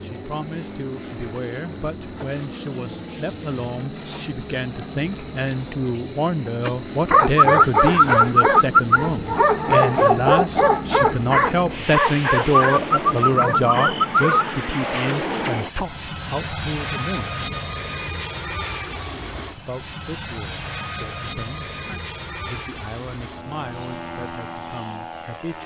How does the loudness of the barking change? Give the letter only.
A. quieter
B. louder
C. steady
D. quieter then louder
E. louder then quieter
A.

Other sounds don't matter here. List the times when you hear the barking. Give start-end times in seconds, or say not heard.
6.7-15.8.